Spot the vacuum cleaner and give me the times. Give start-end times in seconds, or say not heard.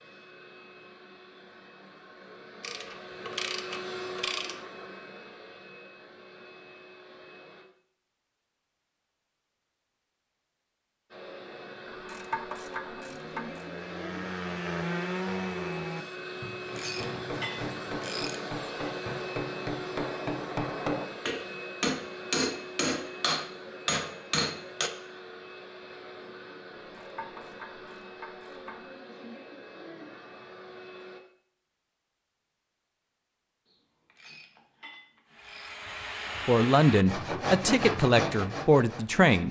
0.0-7.7, 11.1-31.2.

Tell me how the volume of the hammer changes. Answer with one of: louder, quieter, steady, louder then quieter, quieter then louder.
louder.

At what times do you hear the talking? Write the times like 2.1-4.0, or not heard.
36.5-39.4.